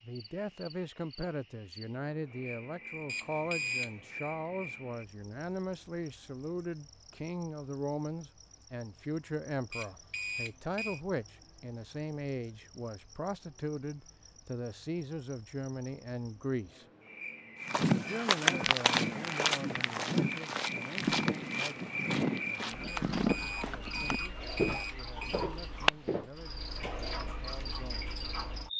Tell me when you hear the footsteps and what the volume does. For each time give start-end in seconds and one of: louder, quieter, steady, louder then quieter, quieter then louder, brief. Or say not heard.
17.6-27.0 quieter.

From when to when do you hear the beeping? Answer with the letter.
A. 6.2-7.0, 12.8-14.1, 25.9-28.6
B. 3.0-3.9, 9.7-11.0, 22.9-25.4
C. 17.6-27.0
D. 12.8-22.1
B.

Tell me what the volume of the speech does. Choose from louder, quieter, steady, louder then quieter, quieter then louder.
quieter.